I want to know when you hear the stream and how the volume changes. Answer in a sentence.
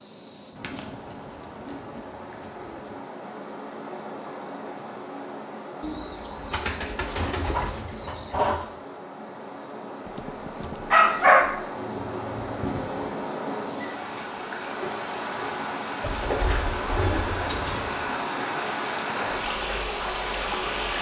You can hear the stream from 0.0 to 20.9 s, getting louder.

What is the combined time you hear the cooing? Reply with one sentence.
You can hear the cooing for 9 seconds altogether.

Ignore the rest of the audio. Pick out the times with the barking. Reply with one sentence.
The barking can be heard from 10.2 to 11.7 s.